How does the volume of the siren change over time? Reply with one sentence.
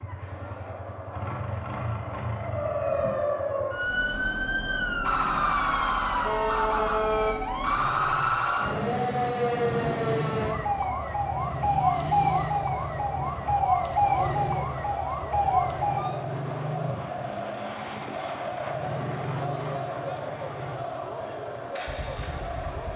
The volume of the siren stays about the same.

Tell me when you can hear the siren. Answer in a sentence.
The siren can be heard from 2.3 to 16.1 s.